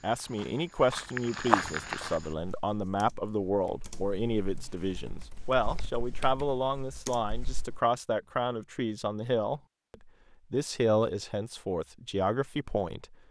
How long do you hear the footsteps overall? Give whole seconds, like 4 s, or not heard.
2 s.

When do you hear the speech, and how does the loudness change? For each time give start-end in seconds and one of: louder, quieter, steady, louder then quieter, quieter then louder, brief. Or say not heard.
0.0-13.2 steady.